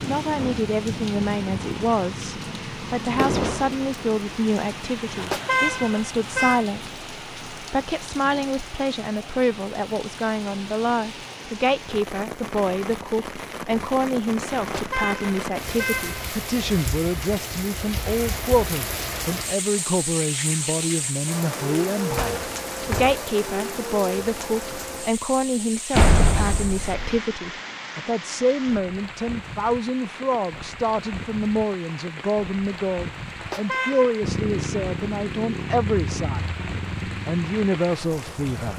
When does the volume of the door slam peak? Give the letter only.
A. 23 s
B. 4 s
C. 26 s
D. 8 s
C.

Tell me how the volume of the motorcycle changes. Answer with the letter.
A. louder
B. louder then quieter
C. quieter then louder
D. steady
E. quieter
E.